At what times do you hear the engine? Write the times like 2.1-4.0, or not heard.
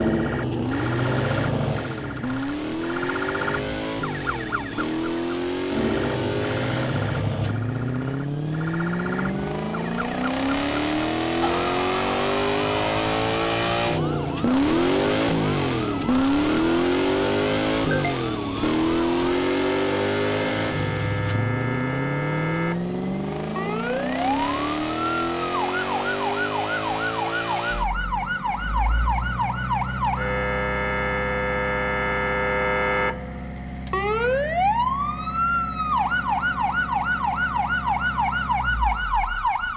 0.1-39.7.